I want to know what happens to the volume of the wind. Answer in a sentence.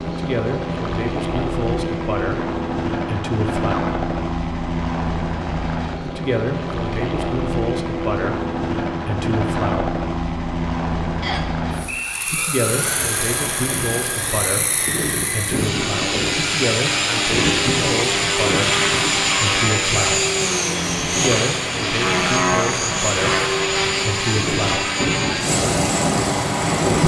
The volume of the wind stays about the same.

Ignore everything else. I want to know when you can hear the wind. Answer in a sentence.
You can hear the wind from 12.6 to 27.0 s.